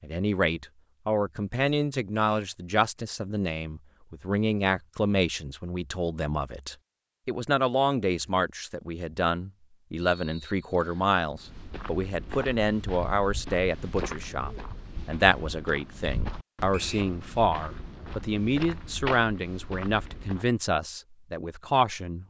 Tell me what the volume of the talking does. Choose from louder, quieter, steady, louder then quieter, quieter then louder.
steady.